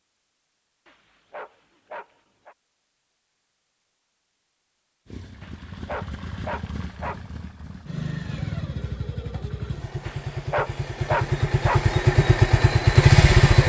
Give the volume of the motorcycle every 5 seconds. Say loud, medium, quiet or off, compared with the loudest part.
off, quiet, loud.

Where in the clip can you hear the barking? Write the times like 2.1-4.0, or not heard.
0.8-2.5, 5.4-7.2, 10.1-11.8.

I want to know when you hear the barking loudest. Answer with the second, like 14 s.
11 s.